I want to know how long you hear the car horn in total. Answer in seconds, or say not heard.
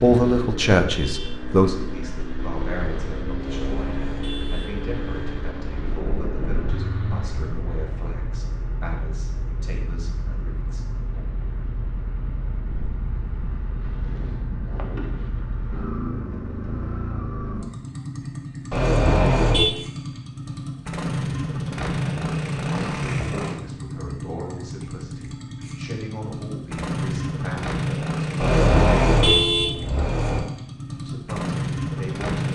5 s.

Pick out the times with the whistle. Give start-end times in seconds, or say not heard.
not heard.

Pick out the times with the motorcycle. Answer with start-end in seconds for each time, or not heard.
0.0-32.5.